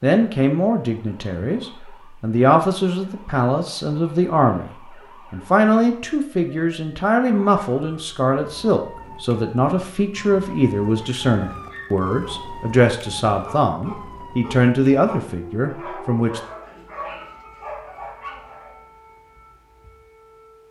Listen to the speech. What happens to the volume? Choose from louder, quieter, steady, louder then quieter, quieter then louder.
steady.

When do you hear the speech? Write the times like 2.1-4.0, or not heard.
0.0-4.7, 5.3-16.4.